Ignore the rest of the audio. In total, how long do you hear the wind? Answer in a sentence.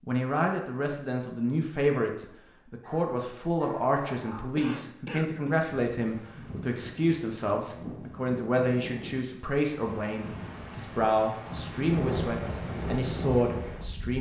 You can hear the wind for 8 seconds altogether.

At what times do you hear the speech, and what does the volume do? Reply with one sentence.
You can hear the speech from 0.1 to 14.1 s, at a steady volume.